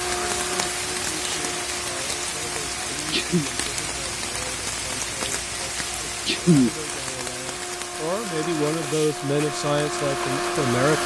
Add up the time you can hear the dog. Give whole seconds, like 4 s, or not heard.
not heard.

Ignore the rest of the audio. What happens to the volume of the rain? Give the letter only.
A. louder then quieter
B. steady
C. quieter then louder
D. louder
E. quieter
E.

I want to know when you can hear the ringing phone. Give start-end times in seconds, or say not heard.
not heard.